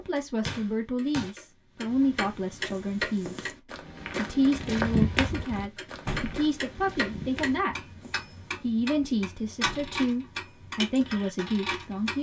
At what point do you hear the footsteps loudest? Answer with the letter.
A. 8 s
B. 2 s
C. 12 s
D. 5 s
D.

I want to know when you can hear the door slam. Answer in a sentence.
The door slam can be heard from 0.5 to 1.3 s, from 6.0 to 6.5 s and from 9.6 to 10.1 s.